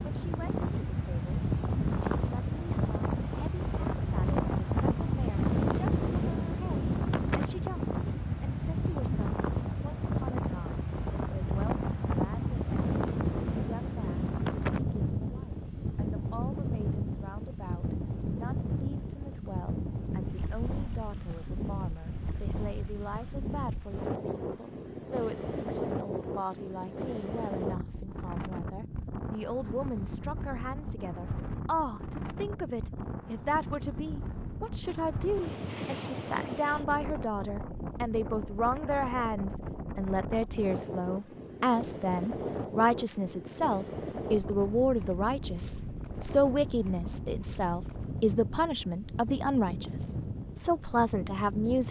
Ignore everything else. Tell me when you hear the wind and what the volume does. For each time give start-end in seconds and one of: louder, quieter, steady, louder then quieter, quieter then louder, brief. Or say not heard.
0.0-51.8 quieter.